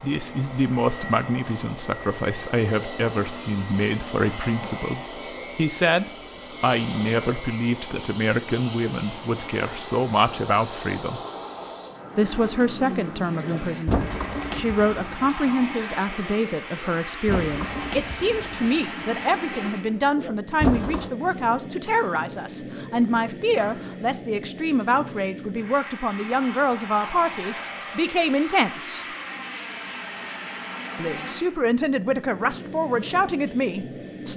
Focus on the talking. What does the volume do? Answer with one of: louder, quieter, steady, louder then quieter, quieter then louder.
steady.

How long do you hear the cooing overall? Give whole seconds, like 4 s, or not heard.
9 s.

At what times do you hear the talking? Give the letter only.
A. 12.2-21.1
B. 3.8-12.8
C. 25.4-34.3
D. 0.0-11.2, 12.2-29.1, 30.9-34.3
D.